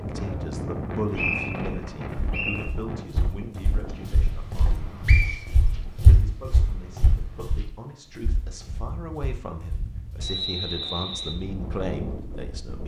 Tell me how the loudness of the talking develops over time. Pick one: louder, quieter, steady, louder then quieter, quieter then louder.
quieter then louder.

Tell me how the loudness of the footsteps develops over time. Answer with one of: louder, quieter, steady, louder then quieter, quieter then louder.
louder then quieter.